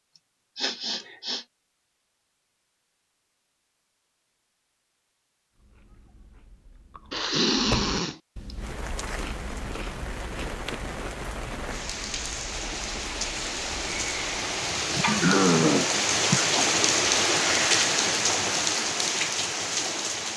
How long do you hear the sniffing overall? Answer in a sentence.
The sniffing can be heard for 4 seconds in total.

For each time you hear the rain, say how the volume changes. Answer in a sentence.
You can hear the rain from 8.6 to 20.3 s, getting louder.